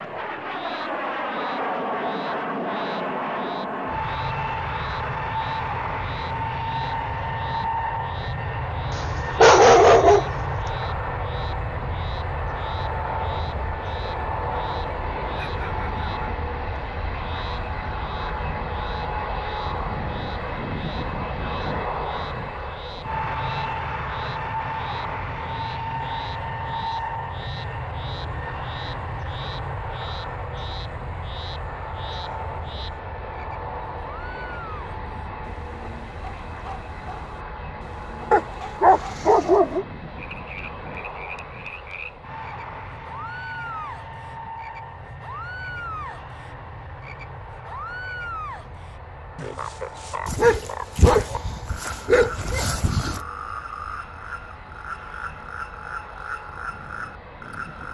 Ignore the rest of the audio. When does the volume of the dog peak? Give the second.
10 s.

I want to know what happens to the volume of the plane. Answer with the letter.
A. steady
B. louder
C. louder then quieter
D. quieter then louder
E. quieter
E.